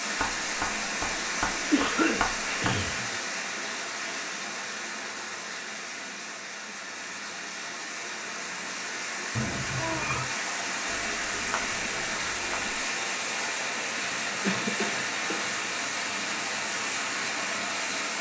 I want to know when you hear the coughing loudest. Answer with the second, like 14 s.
2 s.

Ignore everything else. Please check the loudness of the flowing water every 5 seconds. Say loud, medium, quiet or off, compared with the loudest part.
loud, medium, loud, loud.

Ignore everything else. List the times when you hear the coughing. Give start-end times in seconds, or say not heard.
1.7-3.1, 9.3-10.3, 14.4-15.4.